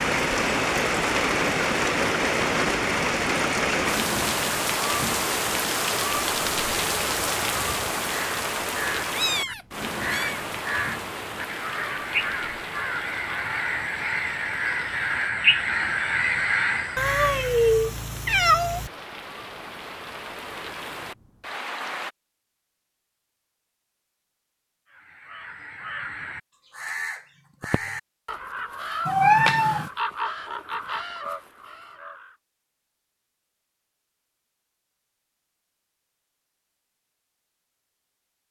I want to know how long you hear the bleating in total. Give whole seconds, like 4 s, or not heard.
not heard.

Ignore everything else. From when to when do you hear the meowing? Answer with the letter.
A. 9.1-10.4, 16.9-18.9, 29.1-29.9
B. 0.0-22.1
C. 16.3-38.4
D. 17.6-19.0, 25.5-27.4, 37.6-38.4
A.